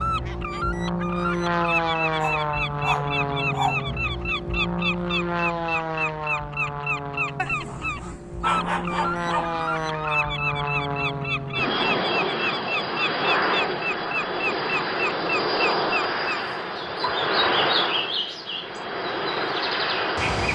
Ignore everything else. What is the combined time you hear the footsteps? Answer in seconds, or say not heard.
not heard.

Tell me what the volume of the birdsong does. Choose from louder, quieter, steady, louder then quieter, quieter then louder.
steady.